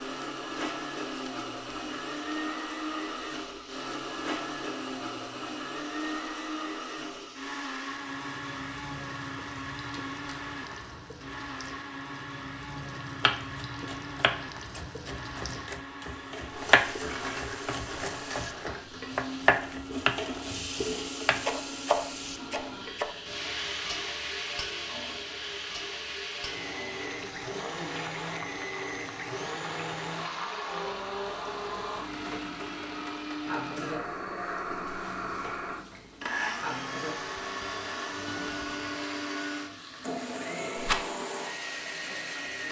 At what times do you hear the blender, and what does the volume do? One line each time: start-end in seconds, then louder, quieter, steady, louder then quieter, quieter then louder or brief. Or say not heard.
0.0-42.6 quieter then louder.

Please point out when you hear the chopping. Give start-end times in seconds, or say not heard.
13.2-23.1.